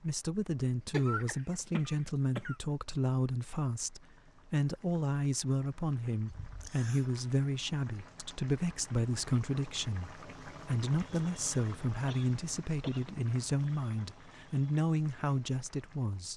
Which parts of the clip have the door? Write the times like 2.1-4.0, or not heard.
not heard.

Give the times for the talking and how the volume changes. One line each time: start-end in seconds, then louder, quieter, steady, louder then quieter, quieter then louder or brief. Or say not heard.
0.0-16.3 steady.